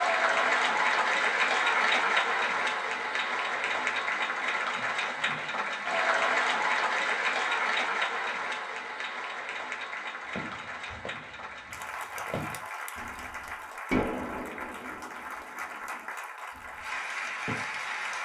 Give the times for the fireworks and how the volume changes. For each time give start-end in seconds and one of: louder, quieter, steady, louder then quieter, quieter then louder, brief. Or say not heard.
10.3-16.9 louder then quieter.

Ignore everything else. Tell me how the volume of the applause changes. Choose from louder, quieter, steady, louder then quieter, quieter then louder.
quieter.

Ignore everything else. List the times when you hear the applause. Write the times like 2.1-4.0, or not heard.
0.0-18.2.